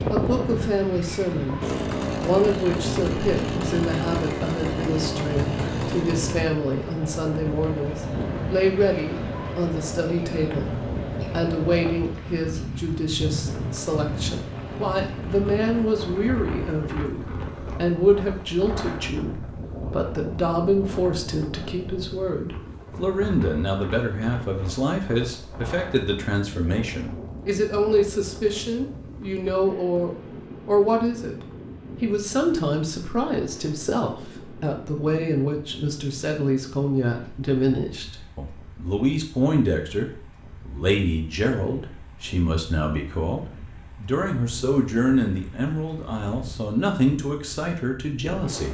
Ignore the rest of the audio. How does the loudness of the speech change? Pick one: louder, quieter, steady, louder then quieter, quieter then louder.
steady.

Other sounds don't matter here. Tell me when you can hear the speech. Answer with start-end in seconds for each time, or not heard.
0.0-48.6.